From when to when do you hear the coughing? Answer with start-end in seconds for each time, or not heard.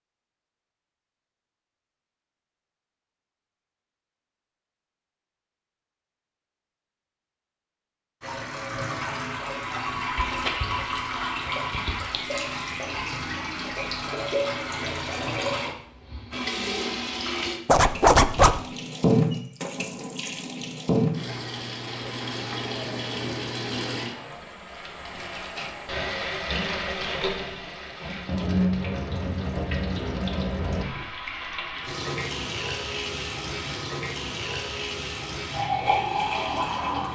not heard.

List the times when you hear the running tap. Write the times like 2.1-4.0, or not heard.
8.2-37.1.